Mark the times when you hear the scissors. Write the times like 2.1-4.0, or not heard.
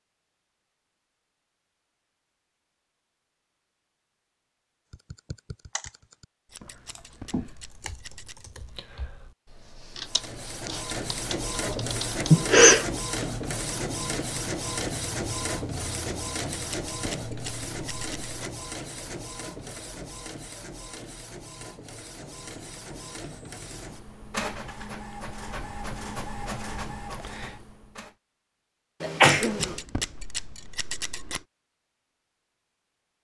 6.5-8.4, 16.5-18.6, 29.2-31.4.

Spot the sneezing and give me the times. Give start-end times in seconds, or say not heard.
12.3-12.8, 29.0-29.8.